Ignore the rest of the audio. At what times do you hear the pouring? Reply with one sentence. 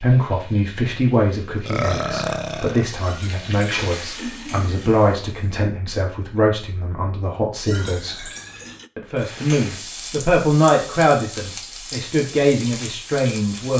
The pouring can be heard from 3.0 to 4.9 s and from 7.7 to 8.9 s.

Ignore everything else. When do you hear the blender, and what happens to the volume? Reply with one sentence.
The blender can't be heard in this clip.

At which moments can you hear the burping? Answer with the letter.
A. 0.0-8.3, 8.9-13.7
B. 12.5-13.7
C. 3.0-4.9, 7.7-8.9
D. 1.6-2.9
D.